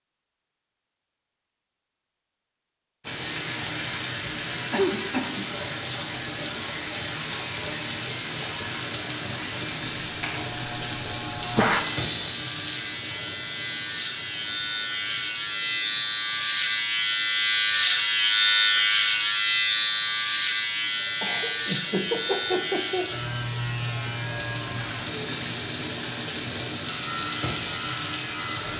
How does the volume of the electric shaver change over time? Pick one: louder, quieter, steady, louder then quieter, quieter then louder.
louder then quieter.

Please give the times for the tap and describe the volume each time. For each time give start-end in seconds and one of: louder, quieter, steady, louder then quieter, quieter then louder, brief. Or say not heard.
3.0-28.7 quieter then louder.